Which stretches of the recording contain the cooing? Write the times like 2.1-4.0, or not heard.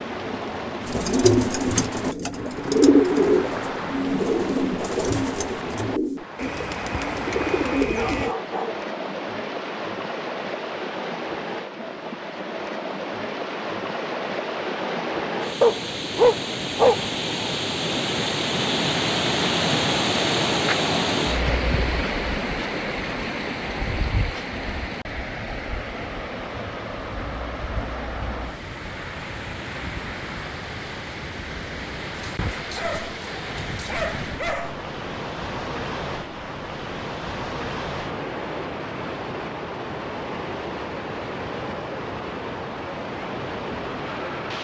0.8-8.3.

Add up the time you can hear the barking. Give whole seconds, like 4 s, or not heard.
5 s.